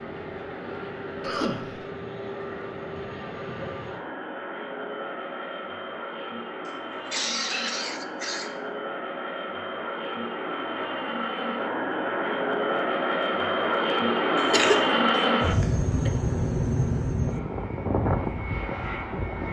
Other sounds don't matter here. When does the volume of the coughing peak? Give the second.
15 s.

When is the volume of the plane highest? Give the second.
15 s.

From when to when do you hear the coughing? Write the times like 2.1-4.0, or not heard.
1.2-1.8, 6.7-8.6, 14.3-16.1.